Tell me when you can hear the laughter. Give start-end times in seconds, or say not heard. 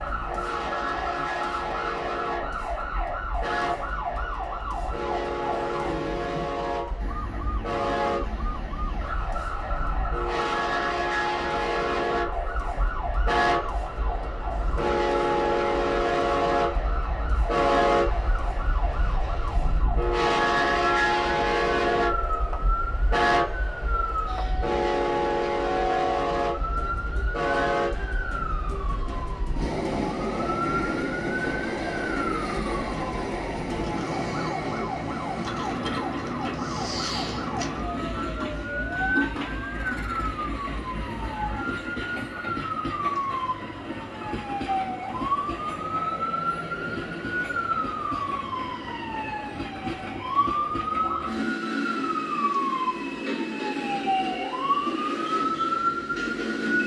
not heard.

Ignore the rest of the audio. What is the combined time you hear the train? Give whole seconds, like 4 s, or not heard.
57 s.